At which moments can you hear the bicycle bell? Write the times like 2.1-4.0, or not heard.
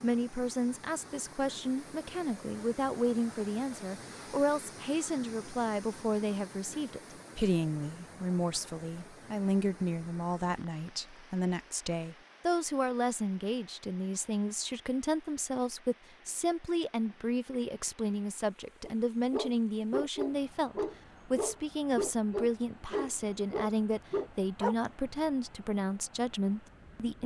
not heard.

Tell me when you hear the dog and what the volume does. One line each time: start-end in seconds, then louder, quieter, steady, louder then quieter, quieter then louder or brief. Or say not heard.
18.8-24.9 steady.